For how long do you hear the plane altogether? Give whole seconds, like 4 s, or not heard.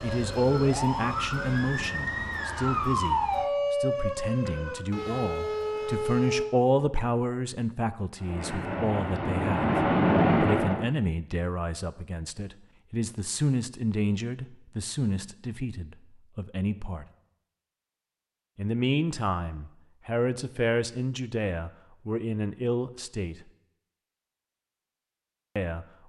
3 s.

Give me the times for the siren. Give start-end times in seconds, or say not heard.
0.0-6.5.